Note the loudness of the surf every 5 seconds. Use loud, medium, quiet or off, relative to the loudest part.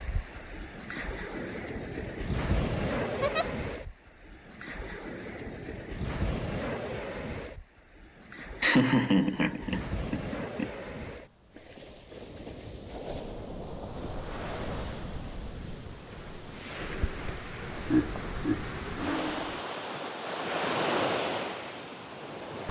loud, medium, medium, medium, loud.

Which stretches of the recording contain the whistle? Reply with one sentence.
The whistle can't be heard in this clip.